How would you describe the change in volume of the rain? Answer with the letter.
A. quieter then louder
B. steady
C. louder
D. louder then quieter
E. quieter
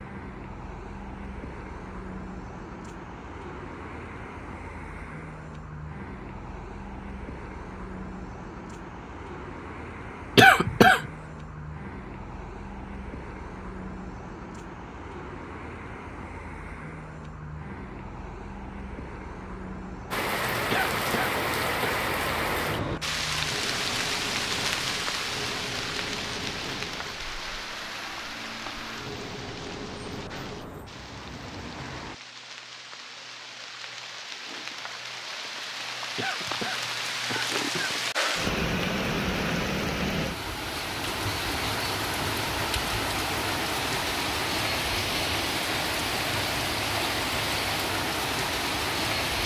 A.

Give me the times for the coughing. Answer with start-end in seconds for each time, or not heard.
10.3-11.1, 20.7-21.9, 36.1-38.0.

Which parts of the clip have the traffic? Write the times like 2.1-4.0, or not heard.
0.0-32.2.